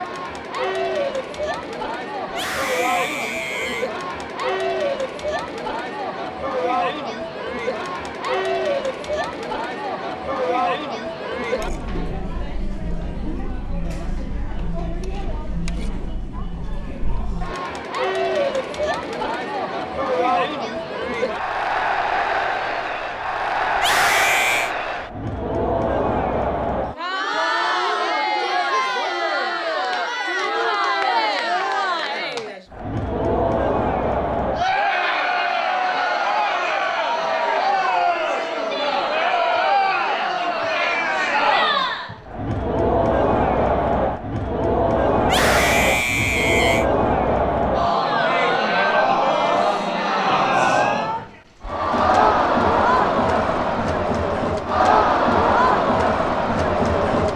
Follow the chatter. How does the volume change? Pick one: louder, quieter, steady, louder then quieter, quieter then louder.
louder.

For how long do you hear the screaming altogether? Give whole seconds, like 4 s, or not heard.
4 s.